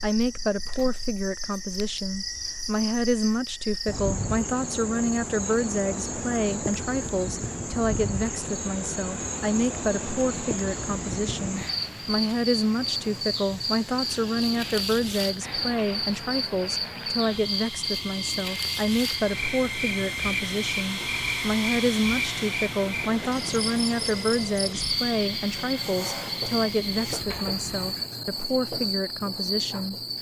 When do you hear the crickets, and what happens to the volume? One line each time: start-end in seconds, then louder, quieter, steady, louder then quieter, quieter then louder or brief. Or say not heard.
0.0-30.1 steady.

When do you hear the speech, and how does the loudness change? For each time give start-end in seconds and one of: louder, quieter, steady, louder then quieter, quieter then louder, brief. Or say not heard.
0.0-29.9 steady.